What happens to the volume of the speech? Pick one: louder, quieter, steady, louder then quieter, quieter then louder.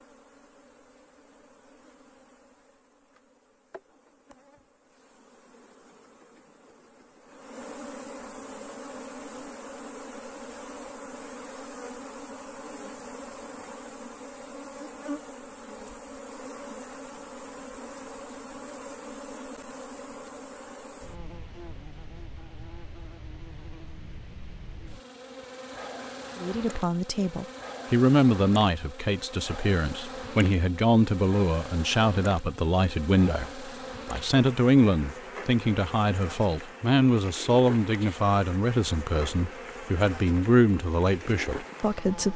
steady.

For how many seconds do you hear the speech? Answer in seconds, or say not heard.
16 s.